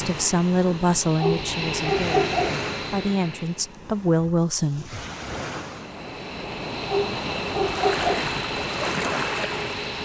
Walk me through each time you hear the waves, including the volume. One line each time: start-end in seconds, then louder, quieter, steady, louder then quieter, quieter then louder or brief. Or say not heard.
0.0-10.0 louder.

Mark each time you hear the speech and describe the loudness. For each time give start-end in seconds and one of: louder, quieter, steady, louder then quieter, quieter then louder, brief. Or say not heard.
0.0-4.8 quieter then louder.